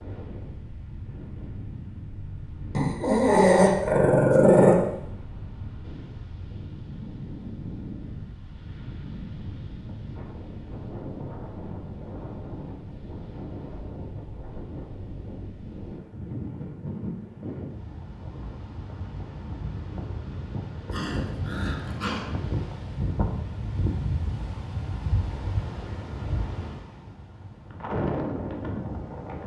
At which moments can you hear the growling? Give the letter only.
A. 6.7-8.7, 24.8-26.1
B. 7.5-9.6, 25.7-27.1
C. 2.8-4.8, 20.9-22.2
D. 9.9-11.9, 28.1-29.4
C.